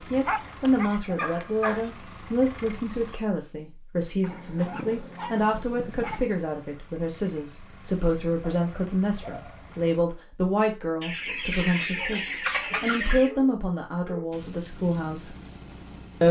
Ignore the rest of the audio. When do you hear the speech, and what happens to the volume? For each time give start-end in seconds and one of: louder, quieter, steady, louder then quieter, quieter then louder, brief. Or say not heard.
0.1-15.3 steady.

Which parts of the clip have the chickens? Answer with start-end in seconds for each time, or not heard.
11.0-13.3.